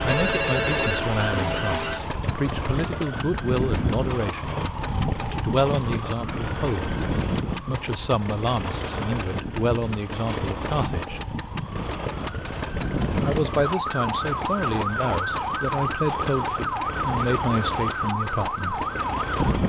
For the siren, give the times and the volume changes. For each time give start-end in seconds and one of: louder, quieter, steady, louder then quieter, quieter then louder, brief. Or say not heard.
0.0-19.6 quieter then louder.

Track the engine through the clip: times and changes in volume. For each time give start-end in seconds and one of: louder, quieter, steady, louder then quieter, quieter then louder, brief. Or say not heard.
0.0-19.6 steady.